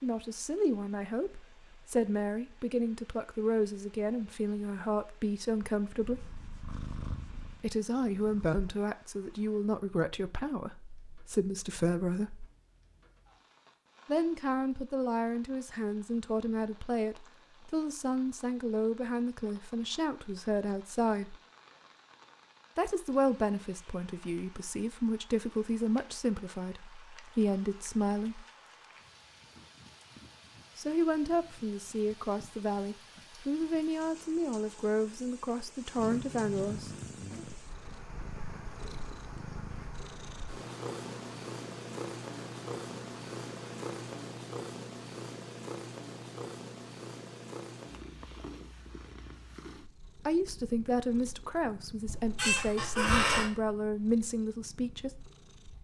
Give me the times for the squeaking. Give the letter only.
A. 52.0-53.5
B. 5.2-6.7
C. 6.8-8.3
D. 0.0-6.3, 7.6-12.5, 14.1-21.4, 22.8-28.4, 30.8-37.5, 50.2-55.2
A.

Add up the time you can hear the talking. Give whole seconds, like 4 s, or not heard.
36 s.